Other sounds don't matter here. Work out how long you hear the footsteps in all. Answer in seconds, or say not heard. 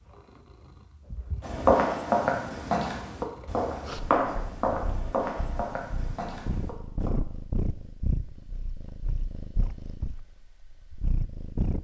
6 s.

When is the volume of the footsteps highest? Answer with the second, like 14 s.
2 s.